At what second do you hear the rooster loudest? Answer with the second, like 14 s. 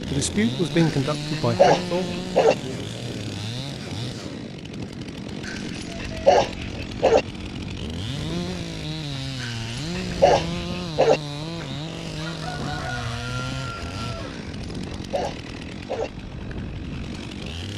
13 s.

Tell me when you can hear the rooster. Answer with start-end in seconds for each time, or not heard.
11.6-14.4.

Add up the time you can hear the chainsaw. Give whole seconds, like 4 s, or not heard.
18 s.